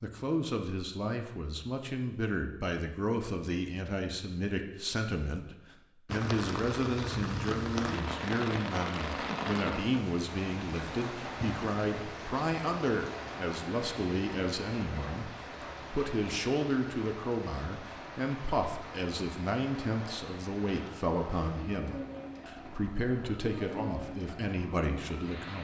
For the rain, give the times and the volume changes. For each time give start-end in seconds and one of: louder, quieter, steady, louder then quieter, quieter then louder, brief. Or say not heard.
6.0-25.5 quieter.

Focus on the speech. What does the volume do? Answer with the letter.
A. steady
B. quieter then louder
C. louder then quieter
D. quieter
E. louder
A.